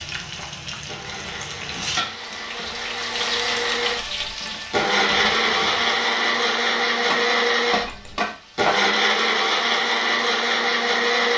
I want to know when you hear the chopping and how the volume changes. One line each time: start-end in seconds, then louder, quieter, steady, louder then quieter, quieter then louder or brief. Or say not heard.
not heard.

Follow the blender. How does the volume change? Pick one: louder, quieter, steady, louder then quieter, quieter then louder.
louder.